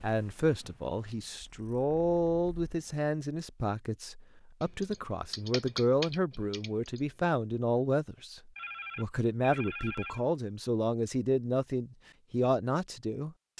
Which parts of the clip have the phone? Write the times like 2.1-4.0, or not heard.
8.6-10.2.